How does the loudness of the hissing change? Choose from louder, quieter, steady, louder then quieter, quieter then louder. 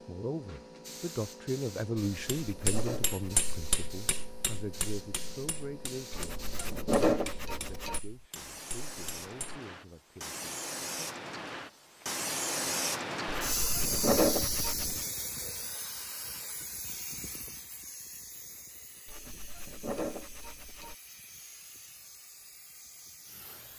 louder then quieter.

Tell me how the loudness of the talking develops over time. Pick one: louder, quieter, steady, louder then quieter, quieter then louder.
quieter.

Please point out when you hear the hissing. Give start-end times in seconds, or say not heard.
0.0-23.7.